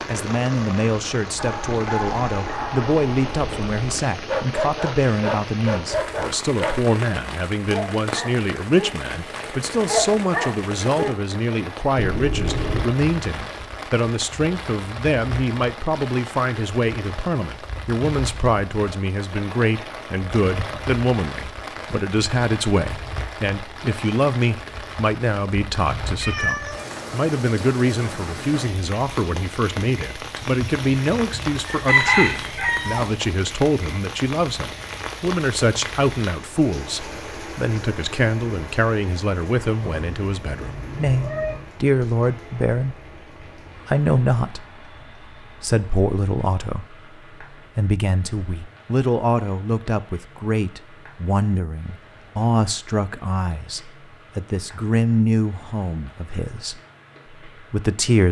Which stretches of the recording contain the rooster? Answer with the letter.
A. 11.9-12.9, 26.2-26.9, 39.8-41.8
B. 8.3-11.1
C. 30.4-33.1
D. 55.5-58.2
C.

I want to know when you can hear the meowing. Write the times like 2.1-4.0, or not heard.
11.9-12.9, 26.2-26.9, 39.8-41.8.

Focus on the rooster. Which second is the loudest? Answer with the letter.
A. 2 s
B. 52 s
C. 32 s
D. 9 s
C.